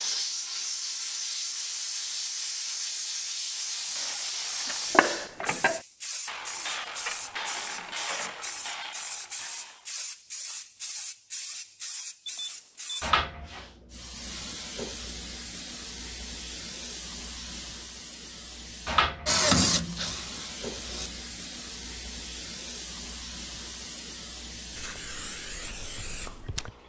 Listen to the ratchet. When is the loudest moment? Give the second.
5 s.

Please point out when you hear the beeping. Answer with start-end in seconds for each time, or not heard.
12.2-13.2.